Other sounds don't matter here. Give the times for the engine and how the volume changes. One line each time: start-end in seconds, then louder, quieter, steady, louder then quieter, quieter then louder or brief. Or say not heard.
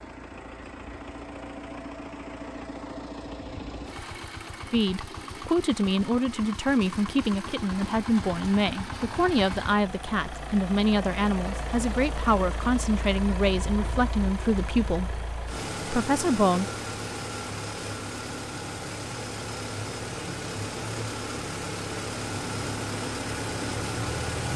0.0-24.5 louder.